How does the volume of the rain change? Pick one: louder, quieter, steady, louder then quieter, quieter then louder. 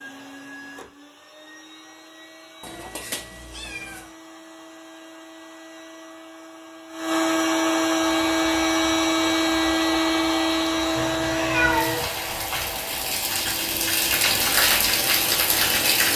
louder.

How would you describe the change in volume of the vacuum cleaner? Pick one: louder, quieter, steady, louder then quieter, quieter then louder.
louder then quieter.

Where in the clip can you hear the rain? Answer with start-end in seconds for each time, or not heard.
8.0-16.1.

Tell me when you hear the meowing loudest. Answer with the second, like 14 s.
12 s.